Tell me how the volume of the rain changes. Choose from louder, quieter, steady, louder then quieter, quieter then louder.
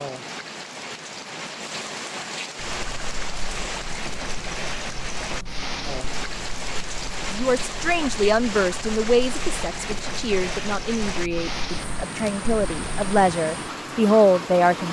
steady.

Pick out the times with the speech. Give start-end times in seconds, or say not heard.
7.3-14.8.